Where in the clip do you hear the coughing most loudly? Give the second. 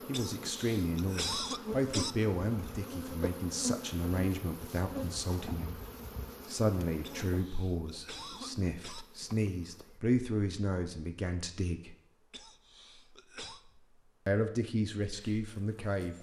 1 s.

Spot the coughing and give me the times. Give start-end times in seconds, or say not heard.
0.1-2.1, 7.0-9.1, 12.3-13.6.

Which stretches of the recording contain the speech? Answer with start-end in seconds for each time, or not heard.
0.1-5.8, 6.5-11.9, 14.2-16.1.